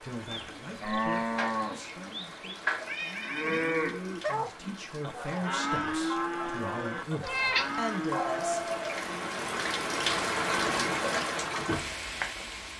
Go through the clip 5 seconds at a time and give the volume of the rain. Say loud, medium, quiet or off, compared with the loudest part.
quiet, medium, loud.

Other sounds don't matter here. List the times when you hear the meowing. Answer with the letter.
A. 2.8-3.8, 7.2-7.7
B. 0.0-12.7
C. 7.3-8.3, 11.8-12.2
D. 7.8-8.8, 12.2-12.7
A.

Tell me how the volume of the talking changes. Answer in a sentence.
The volume of the talking goes down, then up.